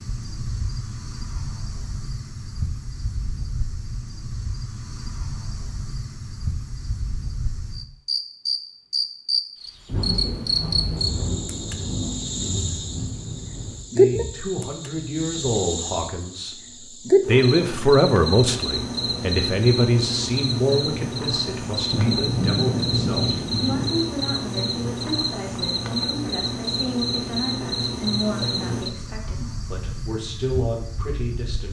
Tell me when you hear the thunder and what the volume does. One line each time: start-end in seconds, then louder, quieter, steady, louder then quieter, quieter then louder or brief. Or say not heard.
9.8-13.8 steady
21.9-23.9 brief.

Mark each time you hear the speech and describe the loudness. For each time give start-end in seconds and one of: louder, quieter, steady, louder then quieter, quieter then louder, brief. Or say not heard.
13.8-16.6 brief
17.2-31.6 quieter.